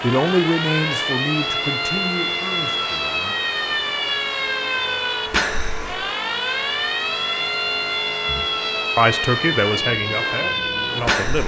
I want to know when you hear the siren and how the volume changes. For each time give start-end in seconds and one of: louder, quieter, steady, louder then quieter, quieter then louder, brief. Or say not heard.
0.0-11.4 steady.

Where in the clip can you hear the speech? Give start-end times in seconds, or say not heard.
0.0-3.4, 8.2-11.4.